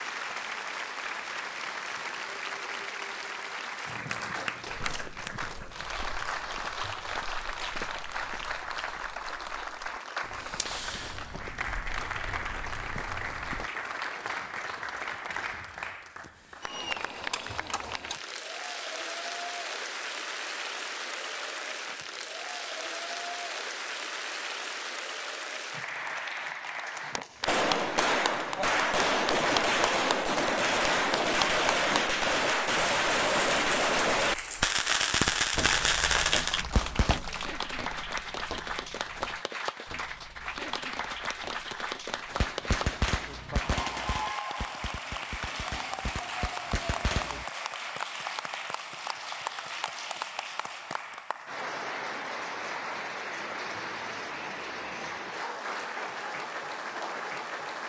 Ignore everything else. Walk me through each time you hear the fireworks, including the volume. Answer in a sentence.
You can hear the fireworks from 27.4 to 37.2 s, at a steady volume; and from 42.3 to 47.5 s, getting quieter then louder.